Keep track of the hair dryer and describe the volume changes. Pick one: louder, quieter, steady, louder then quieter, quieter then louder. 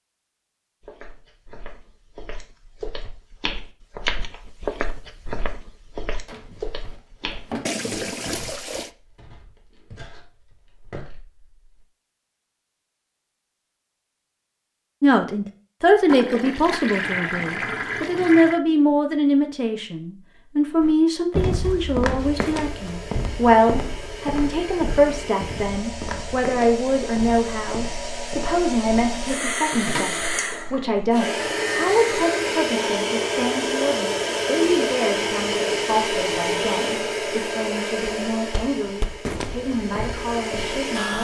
louder then quieter.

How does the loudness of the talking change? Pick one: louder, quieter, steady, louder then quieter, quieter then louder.
quieter.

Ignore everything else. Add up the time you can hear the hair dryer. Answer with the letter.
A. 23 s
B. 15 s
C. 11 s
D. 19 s
D.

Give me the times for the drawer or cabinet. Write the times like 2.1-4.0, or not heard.
6.2-7.7.